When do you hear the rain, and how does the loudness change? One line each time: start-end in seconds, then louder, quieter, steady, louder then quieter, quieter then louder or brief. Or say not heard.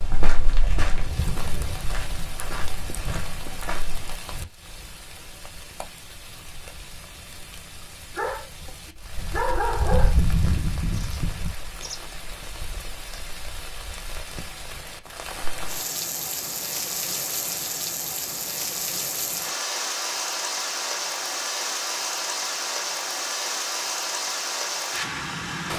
0.0-25.7 louder.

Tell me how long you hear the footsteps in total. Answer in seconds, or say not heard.
4 s.